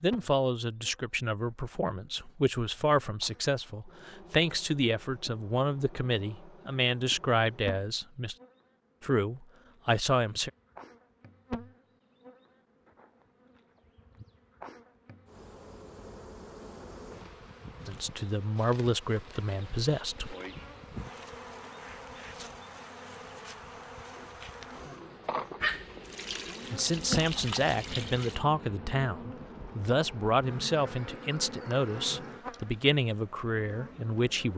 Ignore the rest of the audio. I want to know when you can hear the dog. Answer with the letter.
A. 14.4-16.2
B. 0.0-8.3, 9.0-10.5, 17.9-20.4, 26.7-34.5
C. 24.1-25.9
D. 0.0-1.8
C.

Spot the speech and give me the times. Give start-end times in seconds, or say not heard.
0.0-8.3, 9.0-10.5, 17.9-20.4, 26.7-34.5.